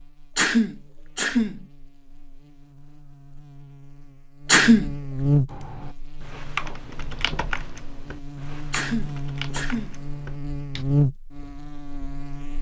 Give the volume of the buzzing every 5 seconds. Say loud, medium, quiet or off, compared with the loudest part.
quiet, loud, loud.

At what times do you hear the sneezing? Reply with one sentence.
You can hear the sneezing from 0.3 to 1.6 s, from 4.5 to 4.9 s and from 8.7 to 9.9 s.